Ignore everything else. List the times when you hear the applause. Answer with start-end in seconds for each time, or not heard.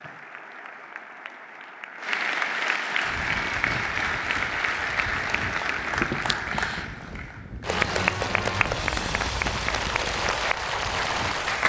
0.0-11.6.